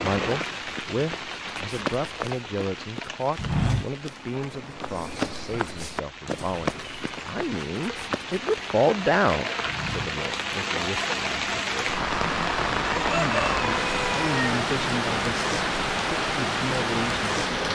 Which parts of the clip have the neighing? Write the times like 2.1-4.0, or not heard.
not heard.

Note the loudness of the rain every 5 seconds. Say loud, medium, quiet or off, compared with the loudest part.
medium, medium, loud, loud.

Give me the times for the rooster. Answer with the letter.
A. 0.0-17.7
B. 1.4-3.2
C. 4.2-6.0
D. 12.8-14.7
D.